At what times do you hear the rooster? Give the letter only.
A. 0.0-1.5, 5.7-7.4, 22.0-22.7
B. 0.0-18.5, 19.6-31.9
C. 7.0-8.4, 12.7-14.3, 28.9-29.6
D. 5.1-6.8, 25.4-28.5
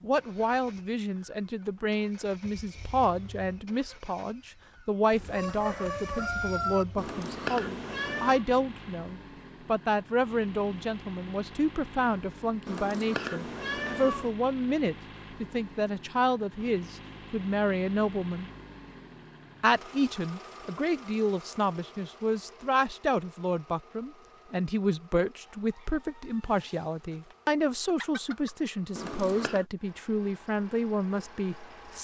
D.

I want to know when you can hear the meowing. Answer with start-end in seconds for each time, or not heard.
7.0-8.4, 12.7-14.3, 28.9-29.6.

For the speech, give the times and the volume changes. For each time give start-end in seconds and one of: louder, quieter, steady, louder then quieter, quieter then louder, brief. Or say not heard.
0.0-18.5 steady
19.6-31.9 steady.